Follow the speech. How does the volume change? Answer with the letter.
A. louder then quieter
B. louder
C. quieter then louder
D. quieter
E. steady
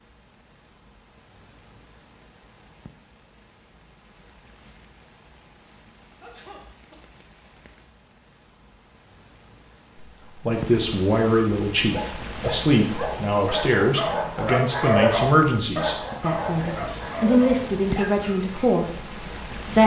E.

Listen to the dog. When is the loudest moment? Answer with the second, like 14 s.
15 s.